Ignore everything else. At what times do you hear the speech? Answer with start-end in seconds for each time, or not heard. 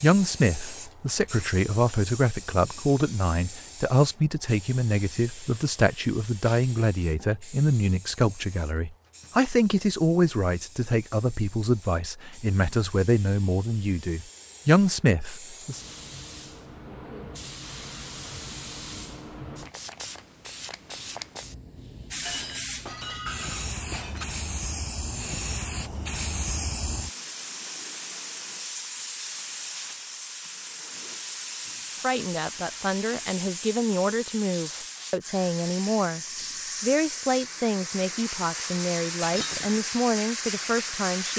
0.0-15.8, 32.0-36.2, 36.8-41.3.